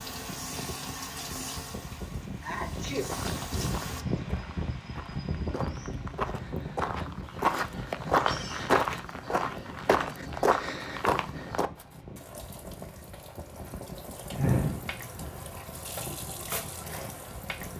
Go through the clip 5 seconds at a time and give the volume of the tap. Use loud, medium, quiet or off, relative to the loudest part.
loud, off, medium, loud.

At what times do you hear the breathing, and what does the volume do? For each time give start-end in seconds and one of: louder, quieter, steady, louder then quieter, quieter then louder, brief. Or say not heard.
not heard.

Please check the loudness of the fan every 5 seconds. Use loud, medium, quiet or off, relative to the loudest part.
loud, loud, medium, medium.